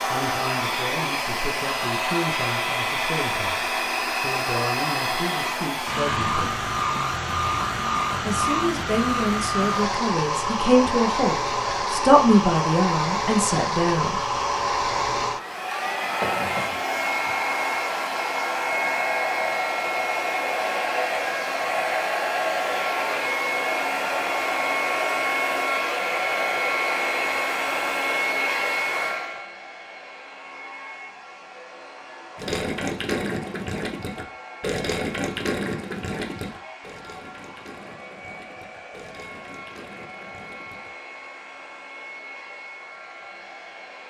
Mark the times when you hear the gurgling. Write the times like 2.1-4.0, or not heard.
32.4-40.9.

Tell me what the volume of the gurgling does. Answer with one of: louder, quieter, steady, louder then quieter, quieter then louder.
quieter.